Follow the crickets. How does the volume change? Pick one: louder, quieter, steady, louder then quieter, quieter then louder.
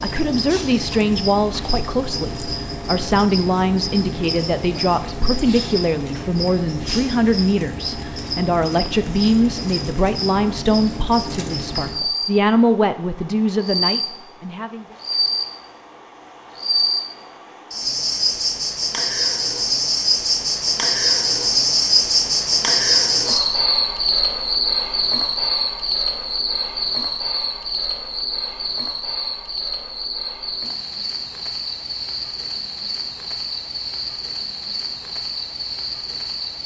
louder then quieter.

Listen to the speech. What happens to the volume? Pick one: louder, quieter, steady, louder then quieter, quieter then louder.
steady.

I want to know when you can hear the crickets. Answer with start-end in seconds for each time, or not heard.
0.0-36.6.